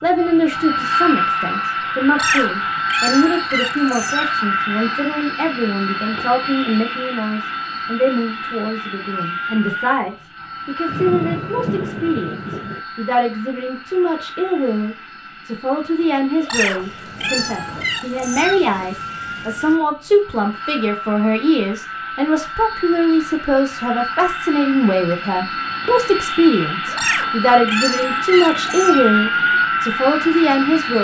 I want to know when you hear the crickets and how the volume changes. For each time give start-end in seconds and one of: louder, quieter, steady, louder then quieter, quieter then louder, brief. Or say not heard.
not heard.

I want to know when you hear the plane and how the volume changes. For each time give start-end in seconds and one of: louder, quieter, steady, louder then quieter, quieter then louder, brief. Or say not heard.
0.0-30.9 quieter then louder.